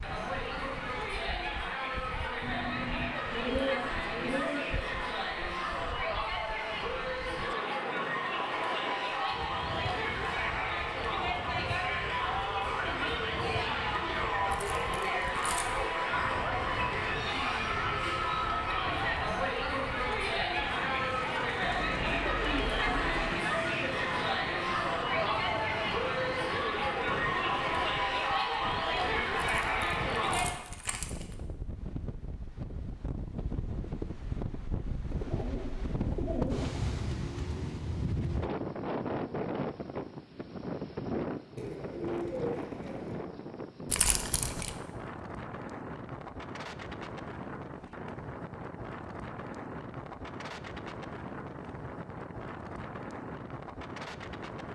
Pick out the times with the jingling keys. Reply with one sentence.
The jingling keys can be heard from 14.5 to 15.7 s, from 29.4 to 31.4 s and from 43.9 to 44.8 s.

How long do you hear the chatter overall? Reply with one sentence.
The chatter can be heard for 31 seconds in total.